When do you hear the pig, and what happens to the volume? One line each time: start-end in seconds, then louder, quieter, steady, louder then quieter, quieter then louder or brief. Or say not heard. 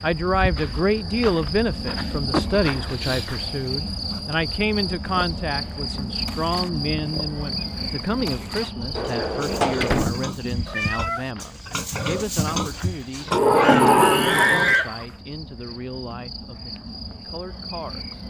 5.0-15.1 louder.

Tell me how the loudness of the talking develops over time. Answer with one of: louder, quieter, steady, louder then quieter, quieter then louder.
quieter.